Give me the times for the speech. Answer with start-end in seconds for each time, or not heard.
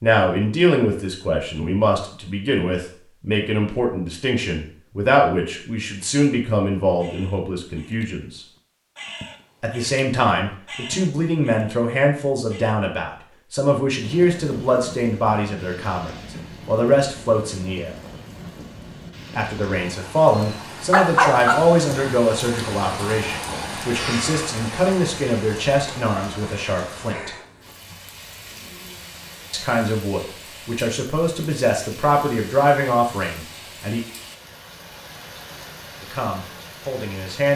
0.0-8.4, 9.6-17.9, 19.4-27.3, 29.5-34.0, 36.0-37.5.